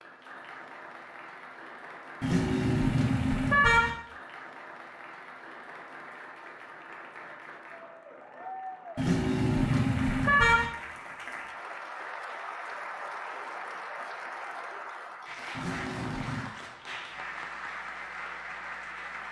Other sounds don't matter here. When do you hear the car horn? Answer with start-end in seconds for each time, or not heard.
2.2-3.9, 8.9-10.7, 15.6-16.5.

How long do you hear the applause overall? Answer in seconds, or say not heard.
19 s.